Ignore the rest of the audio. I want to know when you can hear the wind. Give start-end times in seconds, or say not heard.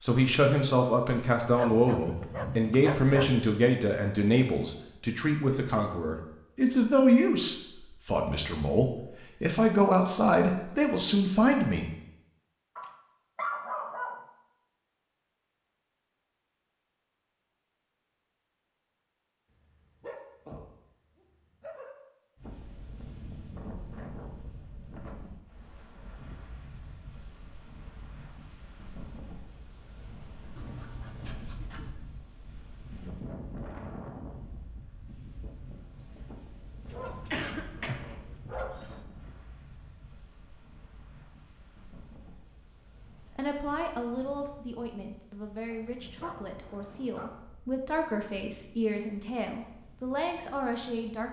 22.4-51.2.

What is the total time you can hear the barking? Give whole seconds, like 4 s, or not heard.
11 s.